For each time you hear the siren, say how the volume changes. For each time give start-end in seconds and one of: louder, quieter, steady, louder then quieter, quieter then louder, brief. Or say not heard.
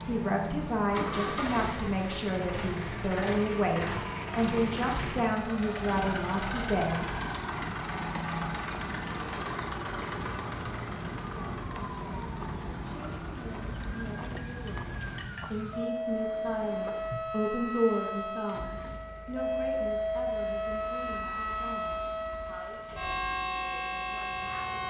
0.0-24.8 louder.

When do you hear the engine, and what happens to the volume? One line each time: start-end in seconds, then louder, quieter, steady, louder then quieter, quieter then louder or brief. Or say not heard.
0.0-24.8 quieter.